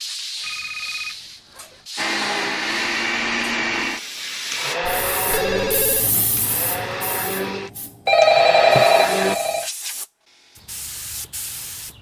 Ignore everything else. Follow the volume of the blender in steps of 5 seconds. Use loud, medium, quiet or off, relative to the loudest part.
loud, loud, off.